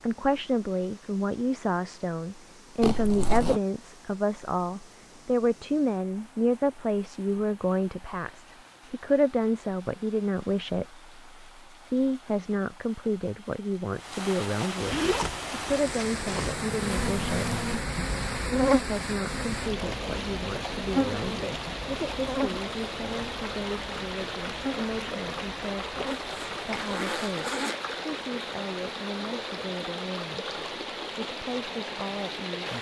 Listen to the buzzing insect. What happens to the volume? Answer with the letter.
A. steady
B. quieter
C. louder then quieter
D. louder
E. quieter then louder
B.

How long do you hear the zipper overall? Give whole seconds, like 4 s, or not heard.
4 s.